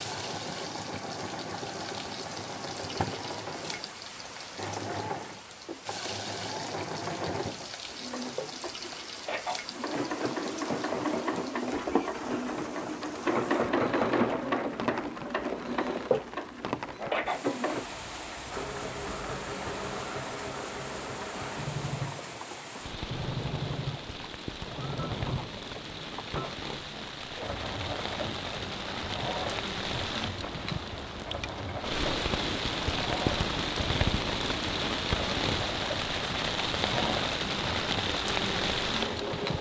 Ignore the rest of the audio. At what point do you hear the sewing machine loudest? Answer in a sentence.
The volume of the sewing machine peaks at 14 seconds.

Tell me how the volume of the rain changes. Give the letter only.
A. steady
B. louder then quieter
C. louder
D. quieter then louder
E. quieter
C.